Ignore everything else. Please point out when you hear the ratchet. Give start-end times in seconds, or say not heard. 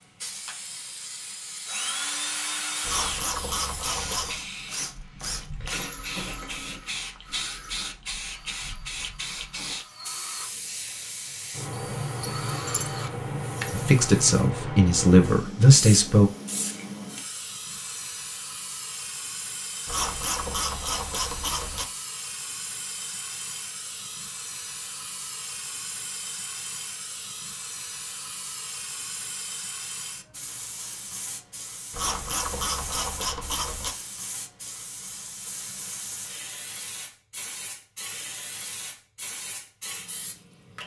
2.8-4.5, 19.9-21.9, 31.9-34.0.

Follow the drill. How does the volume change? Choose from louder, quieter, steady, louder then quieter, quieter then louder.
quieter then louder.